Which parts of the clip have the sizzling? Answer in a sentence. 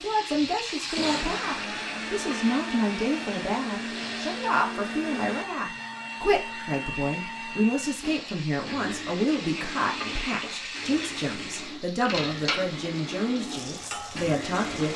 You can hear the sizzling from 0.0 to 4.5 s and from 7.8 to 14.9 s.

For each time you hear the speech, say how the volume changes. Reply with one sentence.
You can hear the speech from 0.0 to 14.9 s, at a steady volume.